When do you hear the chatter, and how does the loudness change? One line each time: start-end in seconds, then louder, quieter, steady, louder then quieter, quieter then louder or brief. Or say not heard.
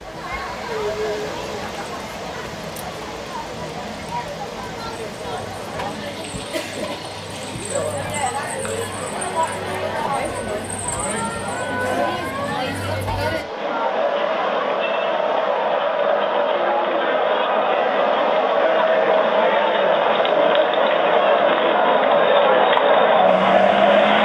0.0-24.1 louder.